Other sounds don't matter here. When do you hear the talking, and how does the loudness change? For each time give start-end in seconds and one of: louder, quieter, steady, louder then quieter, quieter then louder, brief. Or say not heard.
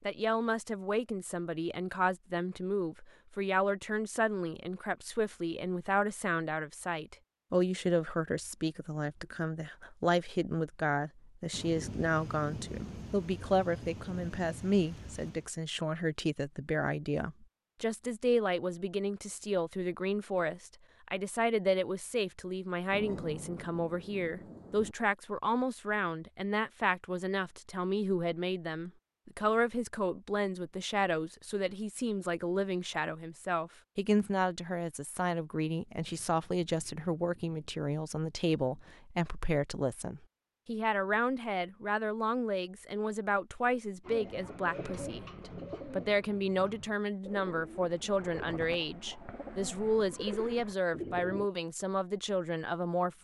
0.1-53.1 steady.